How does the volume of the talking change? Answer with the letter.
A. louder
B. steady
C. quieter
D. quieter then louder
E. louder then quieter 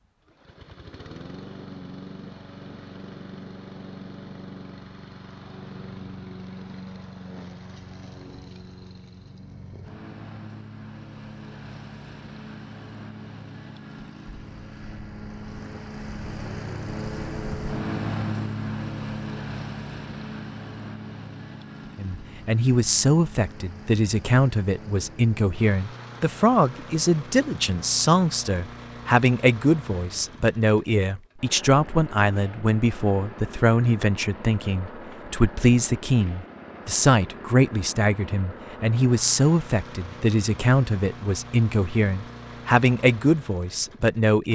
B.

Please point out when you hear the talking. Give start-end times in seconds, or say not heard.
21.9-44.4.